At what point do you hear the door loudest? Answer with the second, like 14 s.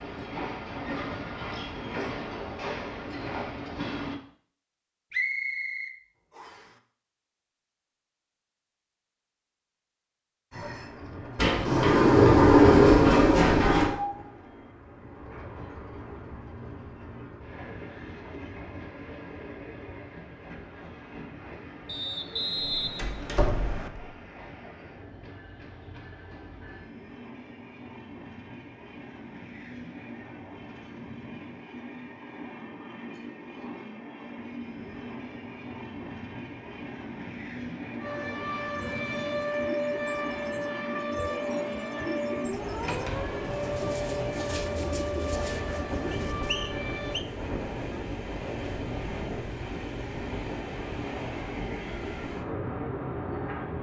13 s.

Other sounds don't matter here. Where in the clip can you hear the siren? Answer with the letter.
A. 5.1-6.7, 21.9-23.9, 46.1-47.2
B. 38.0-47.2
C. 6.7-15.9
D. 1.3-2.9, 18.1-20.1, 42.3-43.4
B.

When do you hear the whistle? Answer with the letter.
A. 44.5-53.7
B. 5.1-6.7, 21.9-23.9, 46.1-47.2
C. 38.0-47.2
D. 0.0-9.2
B.